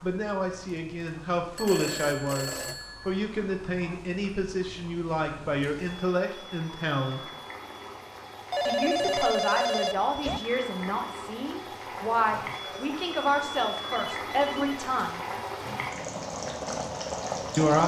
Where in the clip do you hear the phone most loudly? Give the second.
9 s.